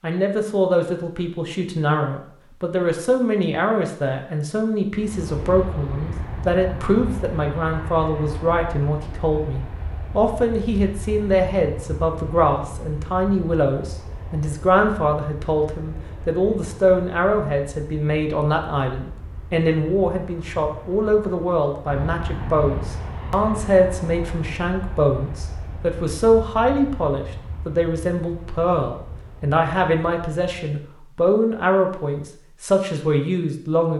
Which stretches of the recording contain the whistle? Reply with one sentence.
You can't hear the whistle here.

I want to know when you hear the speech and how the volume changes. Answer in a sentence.
The speech can be heard from 0.0 to 33.9 s, at a steady volume.